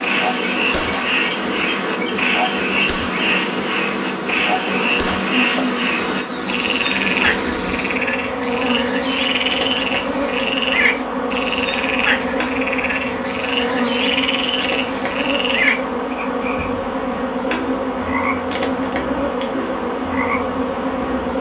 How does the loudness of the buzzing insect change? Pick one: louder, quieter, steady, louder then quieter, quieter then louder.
steady.